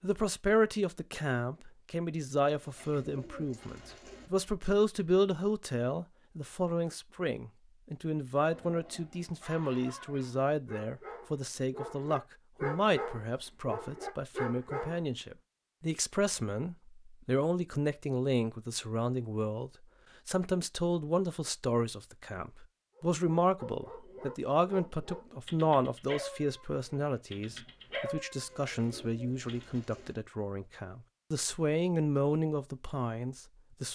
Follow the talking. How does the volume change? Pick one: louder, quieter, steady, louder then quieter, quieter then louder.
steady.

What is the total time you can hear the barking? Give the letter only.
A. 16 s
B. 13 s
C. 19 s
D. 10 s
B.